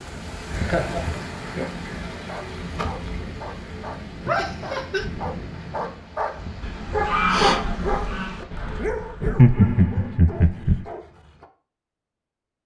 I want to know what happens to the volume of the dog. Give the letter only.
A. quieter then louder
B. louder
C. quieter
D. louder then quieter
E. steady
D.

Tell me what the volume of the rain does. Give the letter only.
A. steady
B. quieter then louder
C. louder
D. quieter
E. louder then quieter
D.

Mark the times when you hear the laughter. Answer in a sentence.
You can hear the laughter from 0.1 to 1.9 s, from 4.2 to 5.0 s and from 9.2 to 10.8 s.